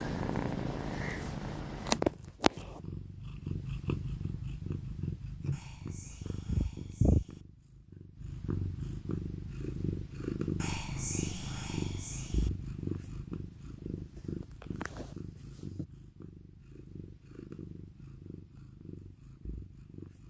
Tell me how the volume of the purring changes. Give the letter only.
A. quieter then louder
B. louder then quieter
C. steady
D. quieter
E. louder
D.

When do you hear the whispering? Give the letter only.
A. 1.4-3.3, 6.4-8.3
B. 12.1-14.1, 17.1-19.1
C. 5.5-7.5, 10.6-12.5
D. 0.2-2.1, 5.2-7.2
C.